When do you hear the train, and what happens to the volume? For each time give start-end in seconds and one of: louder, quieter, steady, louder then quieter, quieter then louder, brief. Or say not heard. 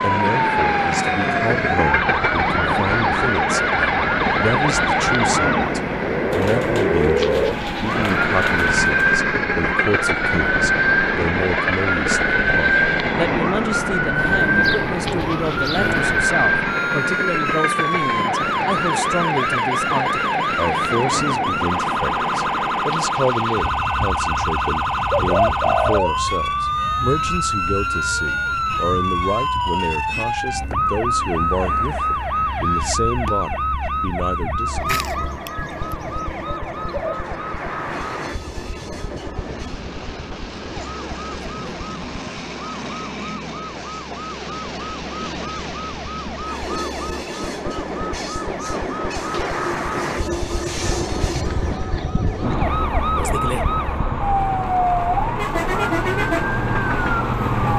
0.0-57.7 quieter then louder.